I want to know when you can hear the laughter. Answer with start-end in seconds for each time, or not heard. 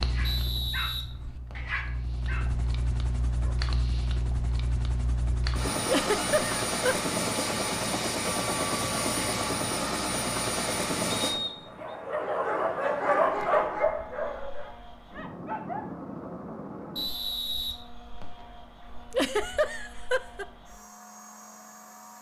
5.8-7.0, 19.1-20.4.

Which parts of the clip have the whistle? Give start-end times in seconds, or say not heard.
0.2-1.7, 11.2-11.9, 16.9-18.4.